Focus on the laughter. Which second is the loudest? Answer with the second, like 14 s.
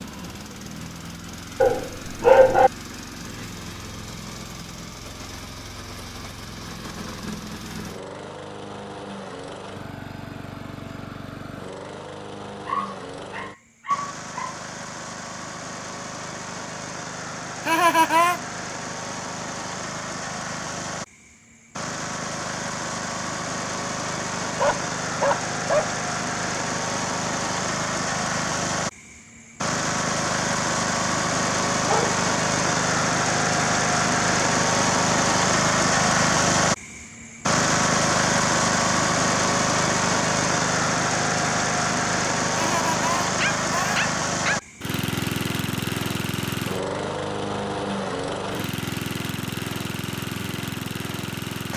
18 s.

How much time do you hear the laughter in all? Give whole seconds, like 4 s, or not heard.
2 s.